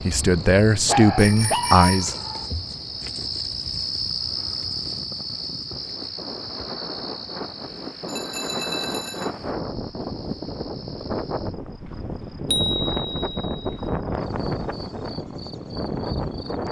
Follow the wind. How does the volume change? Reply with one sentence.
The volume of the wind goes up.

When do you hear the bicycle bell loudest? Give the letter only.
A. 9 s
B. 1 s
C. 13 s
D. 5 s
C.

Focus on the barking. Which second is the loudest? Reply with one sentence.
The loudest moment of the barking is at 1 second.